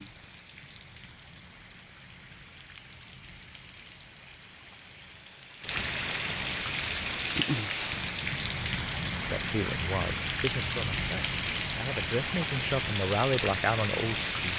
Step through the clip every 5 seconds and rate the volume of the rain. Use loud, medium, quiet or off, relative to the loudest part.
quiet, loud, loud.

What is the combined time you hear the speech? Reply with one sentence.
The speech can be heard for 5 seconds in total.